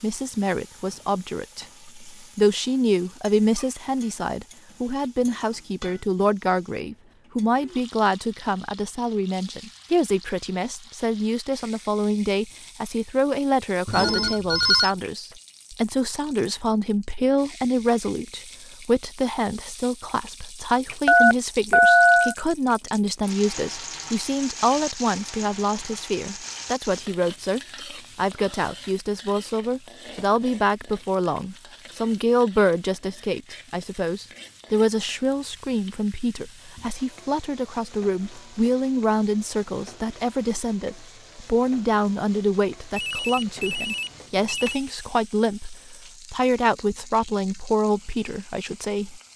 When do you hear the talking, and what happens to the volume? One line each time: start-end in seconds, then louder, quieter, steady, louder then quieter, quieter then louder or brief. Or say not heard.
0.0-49.3 steady.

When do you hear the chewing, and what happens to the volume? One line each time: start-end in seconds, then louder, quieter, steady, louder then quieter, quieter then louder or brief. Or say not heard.
not heard.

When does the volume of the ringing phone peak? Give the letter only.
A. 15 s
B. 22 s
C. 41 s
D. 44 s
B.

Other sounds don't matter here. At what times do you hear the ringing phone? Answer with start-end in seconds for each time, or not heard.
13.8-14.9, 21.1-22.4, 43.0-44.8.